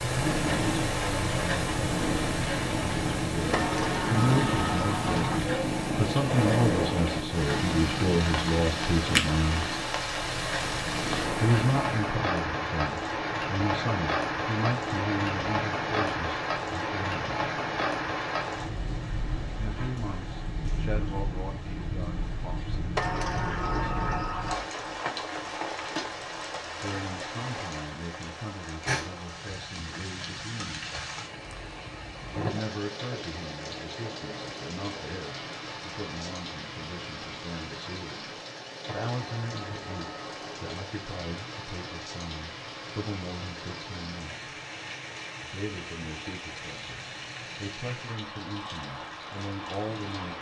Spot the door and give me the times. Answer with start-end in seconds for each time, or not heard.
3.5-5.5, 22.9-24.6, 39.1-40.8.